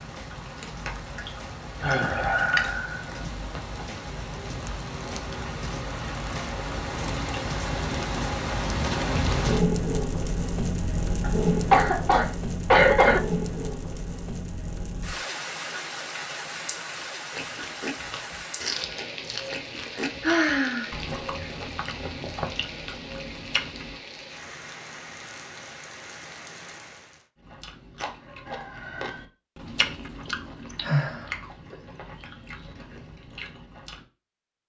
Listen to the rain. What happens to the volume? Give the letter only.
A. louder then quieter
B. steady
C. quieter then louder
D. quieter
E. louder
A.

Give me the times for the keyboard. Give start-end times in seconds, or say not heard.
not heard.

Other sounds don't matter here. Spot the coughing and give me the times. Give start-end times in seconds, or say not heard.
11.2-13.2.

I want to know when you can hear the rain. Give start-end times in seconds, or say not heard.
0.0-27.2.